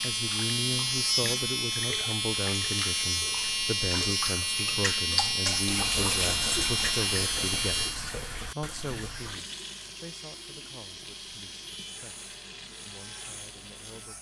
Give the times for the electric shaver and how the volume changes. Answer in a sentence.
You can hear the electric shaver from 0.0 to 14.1 s, getting quieter.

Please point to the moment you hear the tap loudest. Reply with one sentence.
The volume of the tap peaks at 6 seconds.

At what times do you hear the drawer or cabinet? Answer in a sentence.
You can't hear the drawer or cabinet here.